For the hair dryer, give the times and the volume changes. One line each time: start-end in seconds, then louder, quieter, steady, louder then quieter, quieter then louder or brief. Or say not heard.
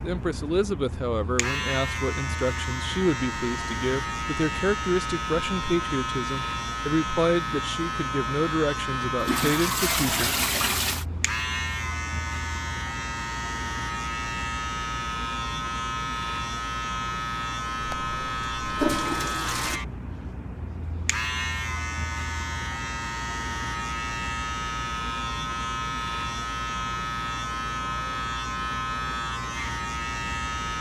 not heard.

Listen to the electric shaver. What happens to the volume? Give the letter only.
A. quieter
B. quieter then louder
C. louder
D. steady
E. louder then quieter
D.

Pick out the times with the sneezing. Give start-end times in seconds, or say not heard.
not heard.